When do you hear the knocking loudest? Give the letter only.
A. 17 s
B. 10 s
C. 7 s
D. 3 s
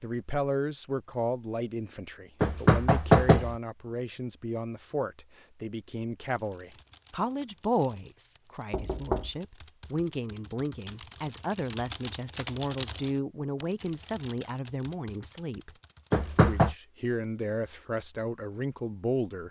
D.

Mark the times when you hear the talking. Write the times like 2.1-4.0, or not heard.
0.0-15.7, 16.4-19.4.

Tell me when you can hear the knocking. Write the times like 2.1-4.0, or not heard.
2.4-3.5, 8.7-9.3, 16.1-16.8.